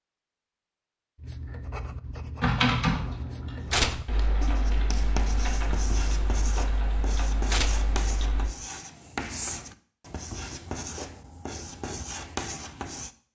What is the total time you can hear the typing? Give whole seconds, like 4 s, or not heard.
6 s.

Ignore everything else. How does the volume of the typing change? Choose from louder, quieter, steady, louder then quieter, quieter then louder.
quieter.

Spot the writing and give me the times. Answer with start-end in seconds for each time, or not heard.
1.1-13.1.